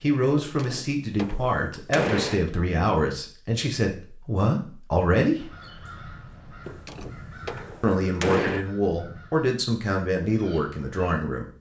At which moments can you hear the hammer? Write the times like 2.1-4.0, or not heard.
0.3-2.5, 6.7-8.7.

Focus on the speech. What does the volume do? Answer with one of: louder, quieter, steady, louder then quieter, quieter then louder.
steady.